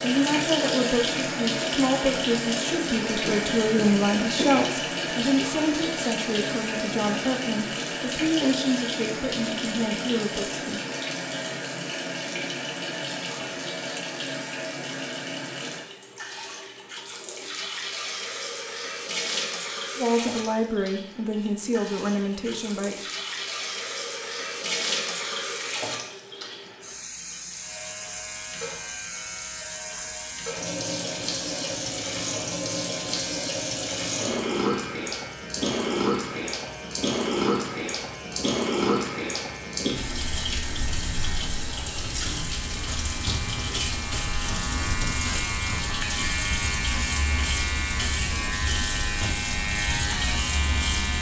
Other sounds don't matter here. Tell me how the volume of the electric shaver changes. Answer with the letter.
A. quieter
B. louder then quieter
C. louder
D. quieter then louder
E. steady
C.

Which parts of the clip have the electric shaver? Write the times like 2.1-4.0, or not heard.
27.5-51.1.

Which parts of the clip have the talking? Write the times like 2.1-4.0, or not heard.
0.0-10.8, 19.9-23.1.